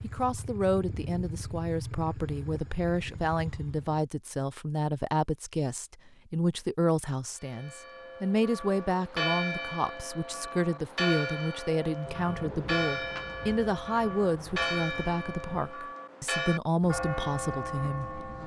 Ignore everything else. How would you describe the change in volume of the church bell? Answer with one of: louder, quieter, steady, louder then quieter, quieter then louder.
steady.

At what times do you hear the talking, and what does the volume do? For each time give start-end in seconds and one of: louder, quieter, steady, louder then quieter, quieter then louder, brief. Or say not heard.
0.0-18.2 steady.